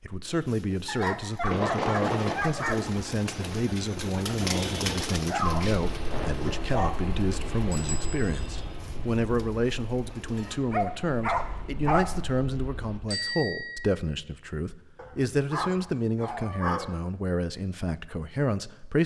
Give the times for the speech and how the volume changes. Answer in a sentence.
You can hear the speech from 0.0 to 19.0 s, at a steady volume.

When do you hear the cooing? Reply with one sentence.
You can hear the cooing from 0.2 to 10.6 s.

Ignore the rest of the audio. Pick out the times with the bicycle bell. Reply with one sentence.
You can hear the bicycle bell from 1.4 to 2.4 s, from 7.7 to 8.5 s and from 13.1 to 13.9 s.